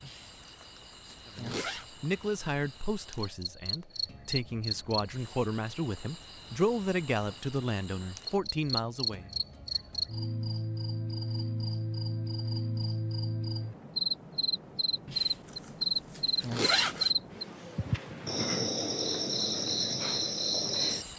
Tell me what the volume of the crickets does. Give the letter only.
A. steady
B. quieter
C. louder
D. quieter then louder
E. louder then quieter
C.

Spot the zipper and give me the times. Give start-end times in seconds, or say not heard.
0.0-1.9, 15.1-17.1.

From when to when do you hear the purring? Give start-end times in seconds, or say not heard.
not heard.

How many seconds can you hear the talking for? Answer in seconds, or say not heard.
8 s.